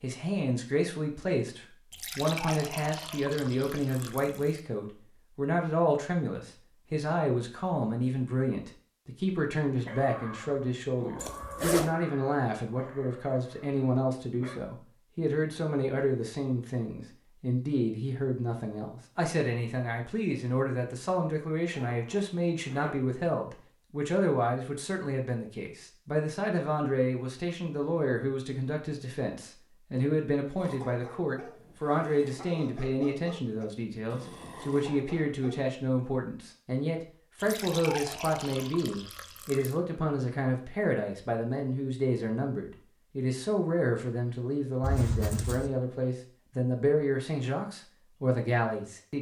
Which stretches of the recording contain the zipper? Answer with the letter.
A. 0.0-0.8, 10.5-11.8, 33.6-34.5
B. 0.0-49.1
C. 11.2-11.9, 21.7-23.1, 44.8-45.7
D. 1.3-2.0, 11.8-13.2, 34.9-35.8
C.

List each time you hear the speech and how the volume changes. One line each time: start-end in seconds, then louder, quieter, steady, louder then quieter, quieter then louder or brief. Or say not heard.
0.0-49.1 steady.